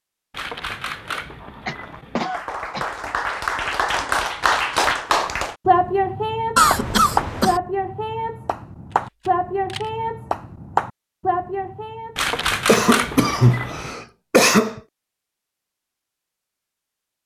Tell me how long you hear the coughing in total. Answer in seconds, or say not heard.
5 s.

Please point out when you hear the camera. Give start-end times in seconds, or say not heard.
0.3-2.2, 8.9-9.9, 12.2-13.9.